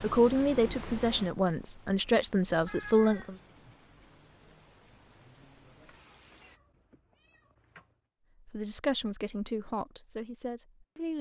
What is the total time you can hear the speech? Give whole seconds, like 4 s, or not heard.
6 s.